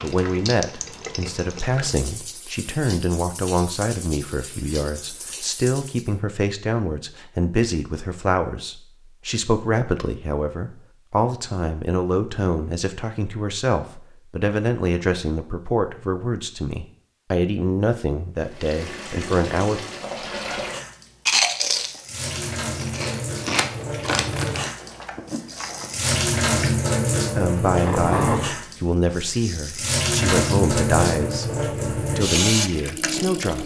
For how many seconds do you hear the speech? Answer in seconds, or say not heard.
26 s.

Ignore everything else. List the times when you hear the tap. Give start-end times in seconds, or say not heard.
0.0-6.2, 18.4-33.6.